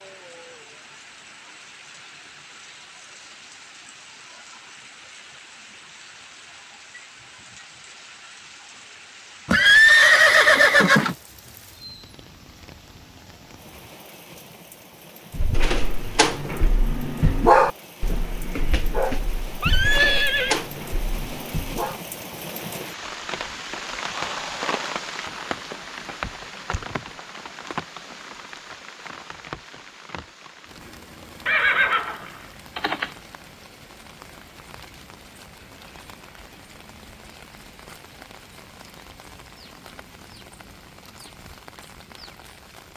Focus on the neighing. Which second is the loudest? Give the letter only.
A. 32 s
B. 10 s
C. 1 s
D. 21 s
B.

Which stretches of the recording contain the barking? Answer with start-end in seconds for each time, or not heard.
15.3-22.0.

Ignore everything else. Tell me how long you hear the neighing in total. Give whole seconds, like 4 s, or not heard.
4 s.